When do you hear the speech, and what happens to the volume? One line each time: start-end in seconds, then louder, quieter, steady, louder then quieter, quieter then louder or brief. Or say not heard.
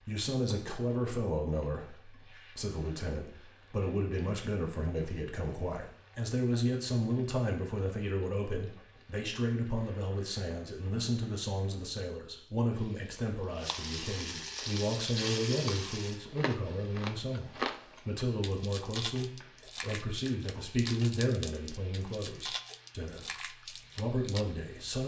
0.1-25.0 steady.